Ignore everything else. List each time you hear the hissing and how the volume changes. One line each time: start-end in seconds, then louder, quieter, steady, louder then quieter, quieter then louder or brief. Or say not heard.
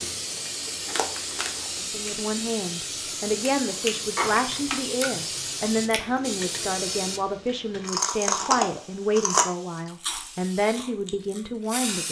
0.0-12.0 quieter.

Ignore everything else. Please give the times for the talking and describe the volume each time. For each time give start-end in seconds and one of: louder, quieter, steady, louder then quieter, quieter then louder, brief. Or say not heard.
1.8-12.0 steady.